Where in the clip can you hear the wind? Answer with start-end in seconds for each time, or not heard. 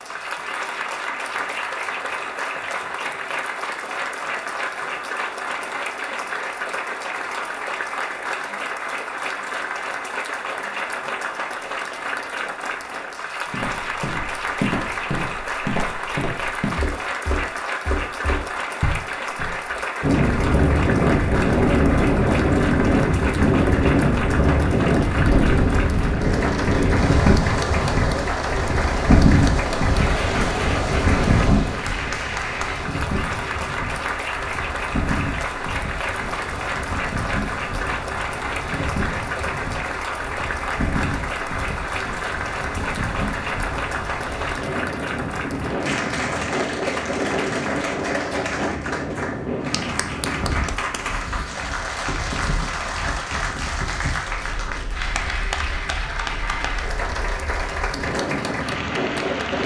20.0-59.6.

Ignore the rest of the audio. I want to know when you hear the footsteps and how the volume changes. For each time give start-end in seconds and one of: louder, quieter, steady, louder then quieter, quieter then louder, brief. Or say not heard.
13.5-19.8 steady.